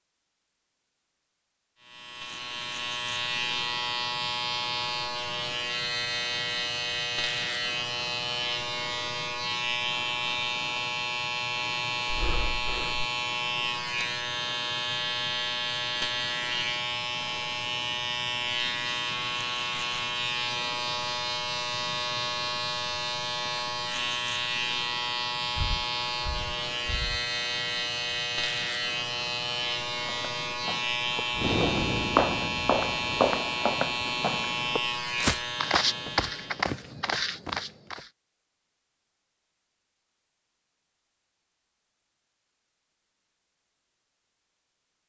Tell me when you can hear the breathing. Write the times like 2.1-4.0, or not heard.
12.1-13.1, 25.6-27.2, 31.3-33.2.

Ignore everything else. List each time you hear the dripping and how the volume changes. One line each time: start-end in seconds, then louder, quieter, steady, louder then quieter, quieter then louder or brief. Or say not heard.
not heard.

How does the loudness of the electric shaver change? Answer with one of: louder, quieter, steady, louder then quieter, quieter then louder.
steady.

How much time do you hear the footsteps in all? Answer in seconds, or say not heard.
8 s.